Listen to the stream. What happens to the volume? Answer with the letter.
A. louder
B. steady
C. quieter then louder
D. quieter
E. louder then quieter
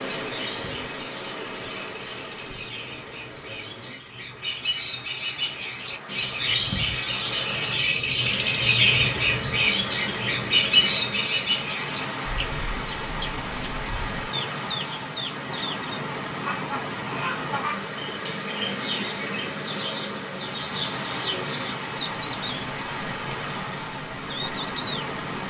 A.